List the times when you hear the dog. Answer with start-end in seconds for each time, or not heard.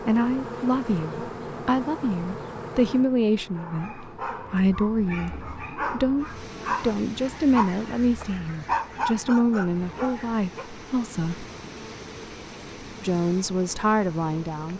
3.5-10.7.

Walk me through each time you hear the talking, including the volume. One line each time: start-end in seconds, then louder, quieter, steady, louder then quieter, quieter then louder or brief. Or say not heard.
0.0-11.4 steady
13.0-14.7 brief.